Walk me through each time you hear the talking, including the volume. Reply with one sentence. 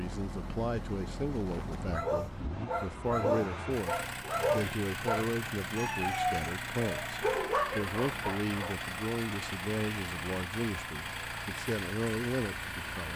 You can hear the talking from 0.0 to 13.1 s, at a steady volume.